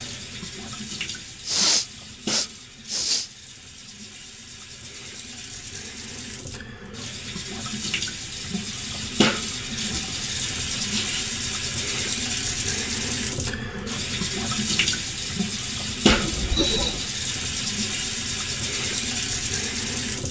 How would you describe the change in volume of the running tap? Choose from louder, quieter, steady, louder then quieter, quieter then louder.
louder.